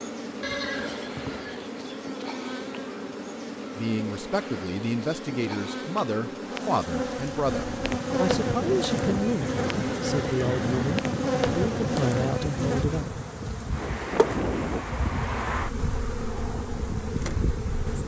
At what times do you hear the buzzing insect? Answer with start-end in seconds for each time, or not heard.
0.0-18.0.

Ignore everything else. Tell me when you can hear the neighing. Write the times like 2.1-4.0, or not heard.
0.4-1.6, 9.2-11.0.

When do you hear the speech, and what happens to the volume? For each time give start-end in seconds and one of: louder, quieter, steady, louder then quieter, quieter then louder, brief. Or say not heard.
3.8-13.2 steady.